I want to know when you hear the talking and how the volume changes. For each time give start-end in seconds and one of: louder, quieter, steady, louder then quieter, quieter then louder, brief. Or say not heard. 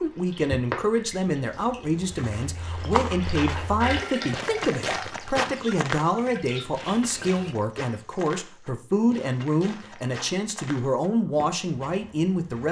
0.0-12.6 steady.